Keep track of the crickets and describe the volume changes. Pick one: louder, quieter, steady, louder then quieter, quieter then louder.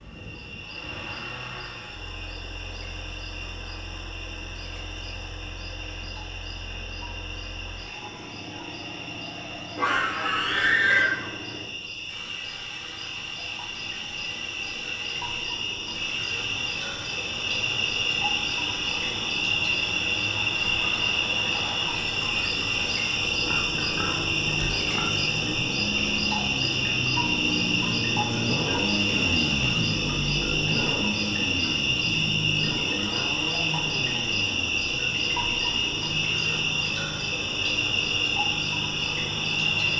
louder.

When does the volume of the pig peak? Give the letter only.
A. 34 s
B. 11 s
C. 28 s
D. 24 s
B.